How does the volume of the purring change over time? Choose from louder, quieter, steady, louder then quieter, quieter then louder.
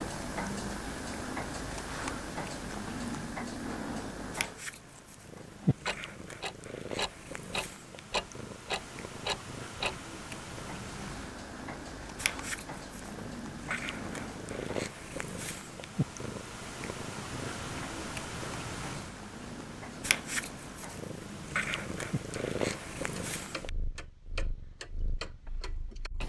louder.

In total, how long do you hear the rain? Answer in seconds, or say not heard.
not heard.